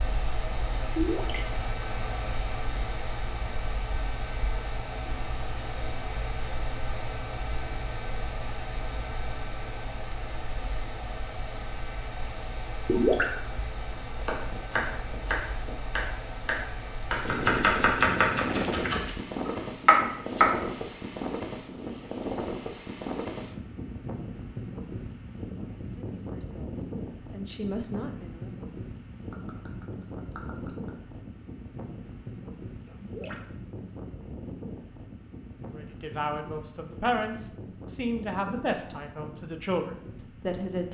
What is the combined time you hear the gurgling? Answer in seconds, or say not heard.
5 s.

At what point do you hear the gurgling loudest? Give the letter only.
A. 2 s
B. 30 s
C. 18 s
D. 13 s
D.